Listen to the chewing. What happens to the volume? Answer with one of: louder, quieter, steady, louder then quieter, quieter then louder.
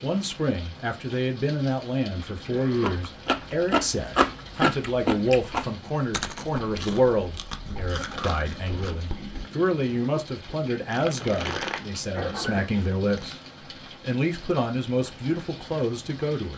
quieter then louder.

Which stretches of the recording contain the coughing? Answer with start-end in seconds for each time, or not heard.
2.5-3.0, 7.8-9.2, 12.1-12.7.